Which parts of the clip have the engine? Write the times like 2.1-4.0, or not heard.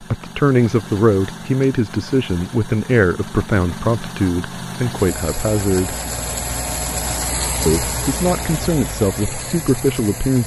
0.0-10.4.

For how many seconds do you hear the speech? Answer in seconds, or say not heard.
9 s.